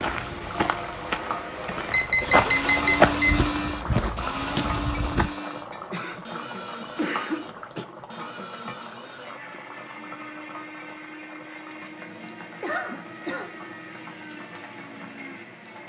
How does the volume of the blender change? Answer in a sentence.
The volume of the blender goes down.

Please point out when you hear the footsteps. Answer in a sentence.
You can hear the footsteps from 0.0 to 5.2 s.